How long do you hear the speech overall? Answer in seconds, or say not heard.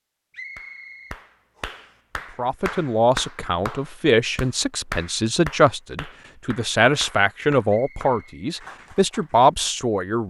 8 s.